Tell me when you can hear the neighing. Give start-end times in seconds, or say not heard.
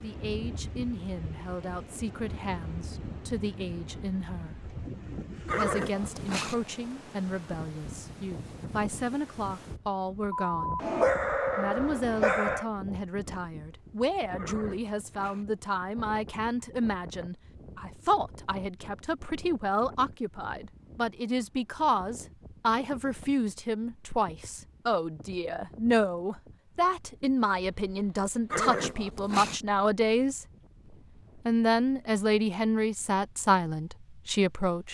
5.5-6.5, 14.3-15.4, 28.5-29.6.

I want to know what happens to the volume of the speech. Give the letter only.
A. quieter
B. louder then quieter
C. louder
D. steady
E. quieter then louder
C.